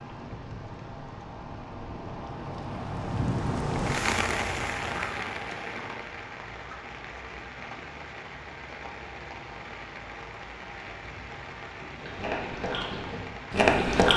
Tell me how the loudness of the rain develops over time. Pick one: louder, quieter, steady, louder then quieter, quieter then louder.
louder then quieter.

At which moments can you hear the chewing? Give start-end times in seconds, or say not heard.
11.8-14.1.